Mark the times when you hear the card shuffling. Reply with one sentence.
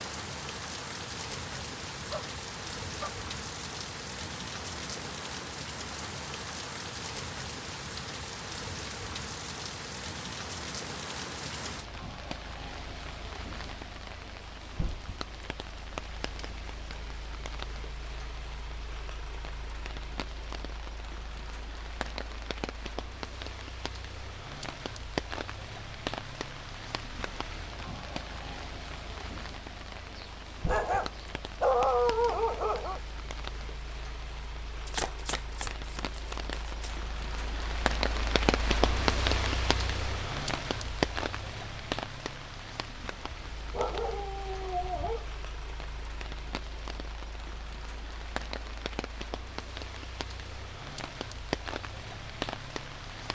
The card shuffling can be heard from 34.9 to 37.0 s.